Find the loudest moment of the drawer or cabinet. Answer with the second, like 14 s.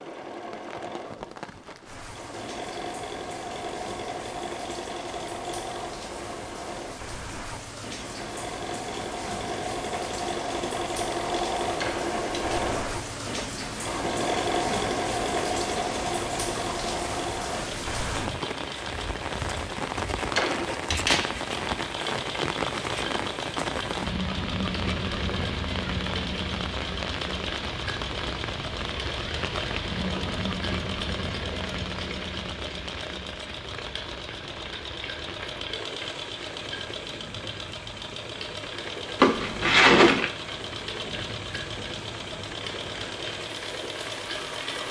40 s.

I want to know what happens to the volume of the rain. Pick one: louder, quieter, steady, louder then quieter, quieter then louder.
louder then quieter.